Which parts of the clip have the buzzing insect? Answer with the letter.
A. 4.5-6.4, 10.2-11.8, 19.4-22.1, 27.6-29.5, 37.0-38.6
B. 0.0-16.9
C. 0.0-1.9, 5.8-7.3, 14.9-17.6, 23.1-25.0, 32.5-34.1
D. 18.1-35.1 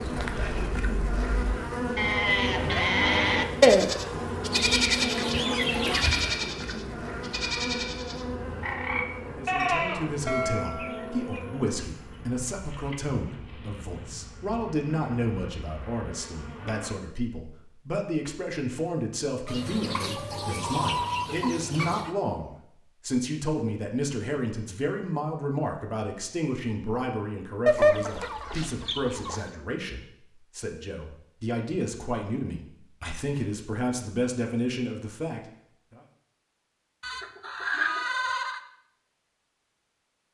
B.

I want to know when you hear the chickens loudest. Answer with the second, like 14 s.
28 s.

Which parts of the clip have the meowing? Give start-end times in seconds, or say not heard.
not heard.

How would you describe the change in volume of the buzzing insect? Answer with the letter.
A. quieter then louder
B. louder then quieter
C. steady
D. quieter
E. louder
D.